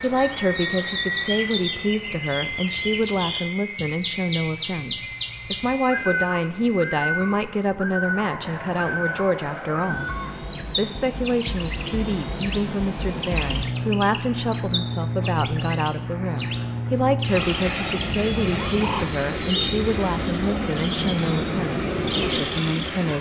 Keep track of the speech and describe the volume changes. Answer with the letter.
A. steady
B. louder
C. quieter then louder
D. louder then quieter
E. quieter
A.